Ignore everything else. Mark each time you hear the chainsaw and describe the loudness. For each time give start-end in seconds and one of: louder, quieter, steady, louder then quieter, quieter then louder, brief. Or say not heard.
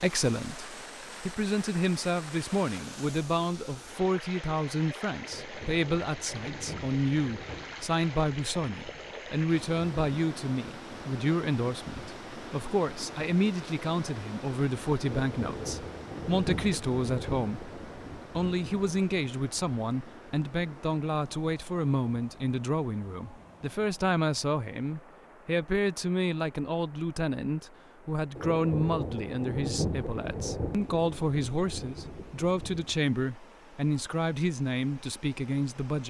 not heard.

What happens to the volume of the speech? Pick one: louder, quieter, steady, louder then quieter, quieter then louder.
steady.